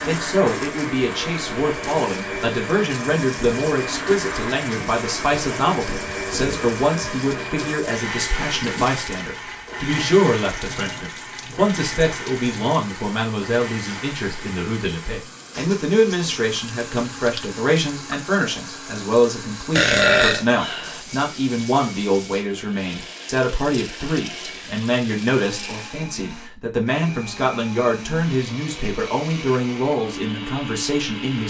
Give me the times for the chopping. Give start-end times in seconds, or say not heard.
not heard.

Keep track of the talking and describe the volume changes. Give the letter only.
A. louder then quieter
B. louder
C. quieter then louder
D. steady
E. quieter
D.